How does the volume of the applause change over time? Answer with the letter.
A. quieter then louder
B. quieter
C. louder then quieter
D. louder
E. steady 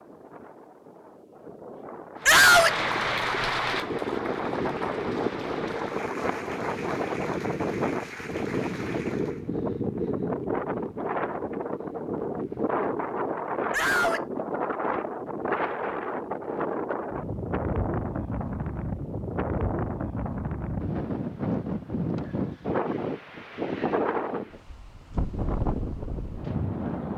B.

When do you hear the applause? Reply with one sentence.
The applause can be heard from 2.1 to 9.5 s.